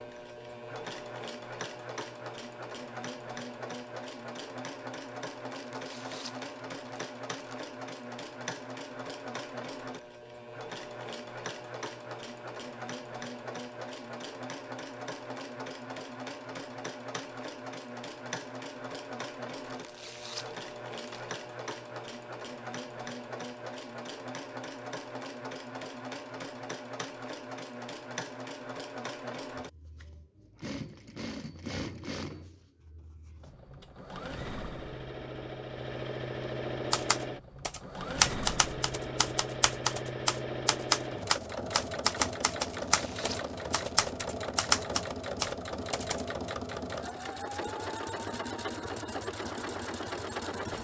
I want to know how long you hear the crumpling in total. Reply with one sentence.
You can hear the crumpling for 5 seconds altogether.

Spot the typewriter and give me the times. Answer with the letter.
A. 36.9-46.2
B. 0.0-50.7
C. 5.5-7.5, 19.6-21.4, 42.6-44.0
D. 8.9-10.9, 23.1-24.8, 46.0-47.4
A.